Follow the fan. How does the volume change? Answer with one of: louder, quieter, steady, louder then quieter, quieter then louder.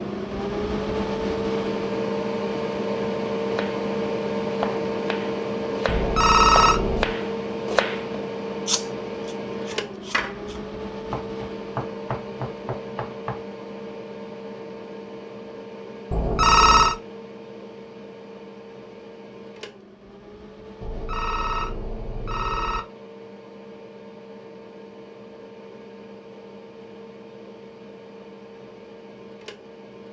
quieter.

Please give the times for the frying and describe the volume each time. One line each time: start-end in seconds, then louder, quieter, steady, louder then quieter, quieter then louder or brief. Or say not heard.
not heard.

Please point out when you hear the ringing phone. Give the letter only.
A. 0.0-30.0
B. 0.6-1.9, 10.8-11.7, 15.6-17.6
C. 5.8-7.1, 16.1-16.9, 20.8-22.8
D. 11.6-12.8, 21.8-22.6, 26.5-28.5
C.